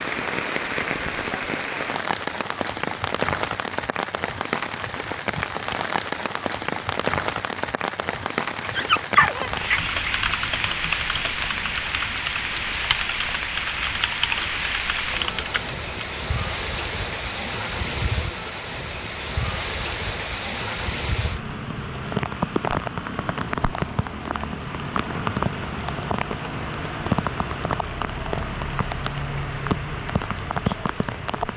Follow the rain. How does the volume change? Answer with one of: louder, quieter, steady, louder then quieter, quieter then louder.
steady.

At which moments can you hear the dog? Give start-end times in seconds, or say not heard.
8.6-10.6.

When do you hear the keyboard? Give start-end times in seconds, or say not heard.
9.7-15.8.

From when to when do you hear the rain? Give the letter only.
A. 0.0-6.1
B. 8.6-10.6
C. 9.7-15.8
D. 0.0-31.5
D.